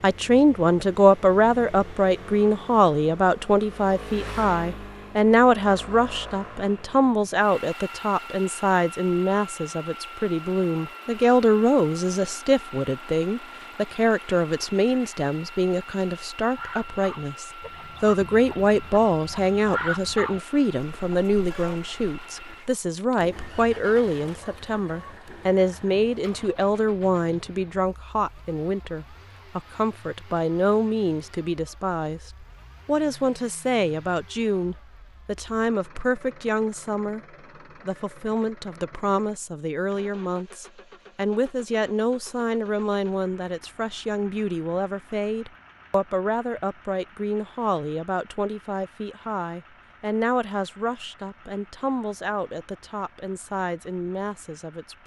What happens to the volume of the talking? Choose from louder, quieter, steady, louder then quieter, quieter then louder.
quieter.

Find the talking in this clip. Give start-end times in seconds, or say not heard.
0.0-37.2, 37.9-55.0.